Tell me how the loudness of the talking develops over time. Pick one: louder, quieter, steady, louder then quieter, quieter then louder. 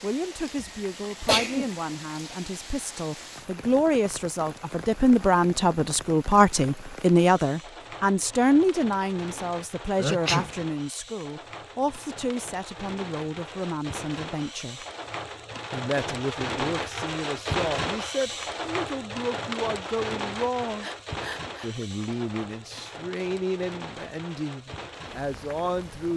louder then quieter.